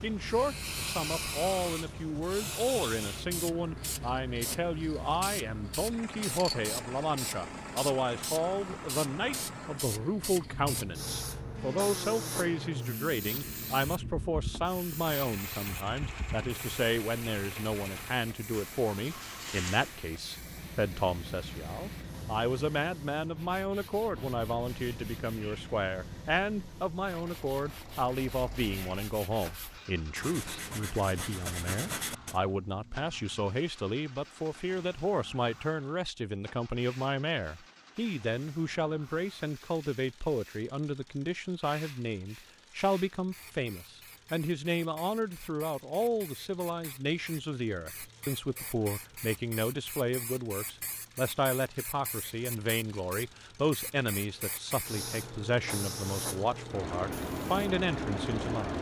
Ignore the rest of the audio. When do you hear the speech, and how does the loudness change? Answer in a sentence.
The speech can be heard from 0.0 to 58.7 s, at a steady volume.